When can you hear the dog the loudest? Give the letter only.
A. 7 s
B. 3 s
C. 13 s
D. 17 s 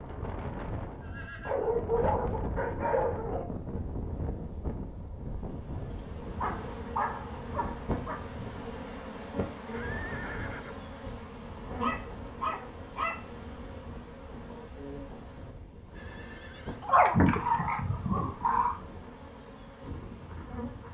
D.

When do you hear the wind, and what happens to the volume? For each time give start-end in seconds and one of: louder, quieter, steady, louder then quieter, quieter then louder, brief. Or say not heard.
0.0-20.8 quieter.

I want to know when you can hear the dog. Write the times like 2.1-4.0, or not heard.
1.4-3.5, 6.4-8.2, 11.8-13.2, 16.9-18.8.